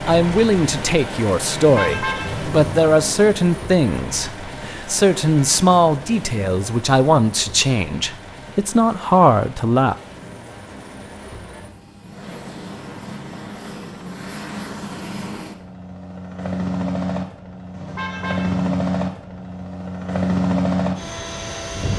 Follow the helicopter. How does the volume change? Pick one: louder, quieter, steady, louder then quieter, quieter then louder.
quieter then louder.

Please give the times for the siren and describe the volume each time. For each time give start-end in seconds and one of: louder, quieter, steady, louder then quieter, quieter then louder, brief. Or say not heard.
not heard.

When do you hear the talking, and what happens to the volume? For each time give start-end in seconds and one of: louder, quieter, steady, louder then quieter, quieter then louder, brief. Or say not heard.
0.1-9.9 steady.